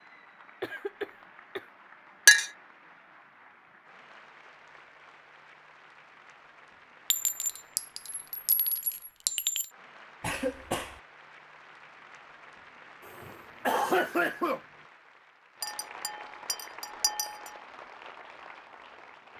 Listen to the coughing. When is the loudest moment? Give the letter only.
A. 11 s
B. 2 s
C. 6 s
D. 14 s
D.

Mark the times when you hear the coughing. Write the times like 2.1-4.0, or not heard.
0.6-1.6, 10.2-11.0, 13.1-14.6.